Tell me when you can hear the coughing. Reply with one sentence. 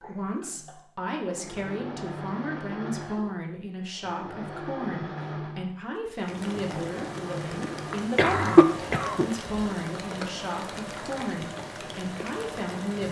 The coughing can be heard from 8.2 to 9.5 s.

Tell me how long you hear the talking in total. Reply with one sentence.
You can hear the talking for 13 seconds altogether.